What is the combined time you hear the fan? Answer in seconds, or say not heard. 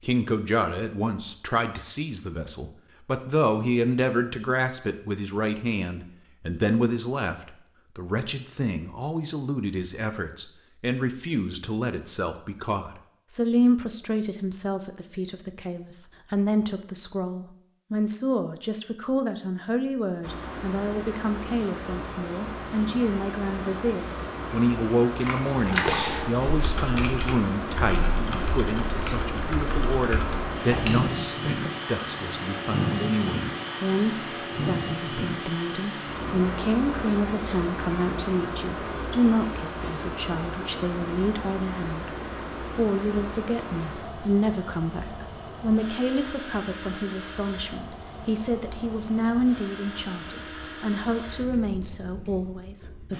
33 s.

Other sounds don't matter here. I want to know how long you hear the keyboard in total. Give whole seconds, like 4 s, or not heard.
6 s.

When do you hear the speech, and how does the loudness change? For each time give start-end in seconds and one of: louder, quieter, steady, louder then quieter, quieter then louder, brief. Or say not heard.
0.0-53.1 steady.